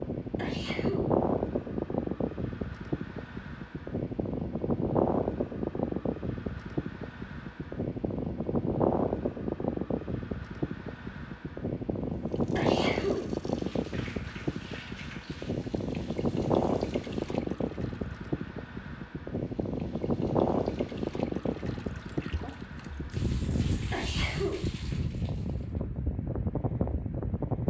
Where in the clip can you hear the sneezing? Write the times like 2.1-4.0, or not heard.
0.3-1.1, 12.6-13.2, 23.9-24.6.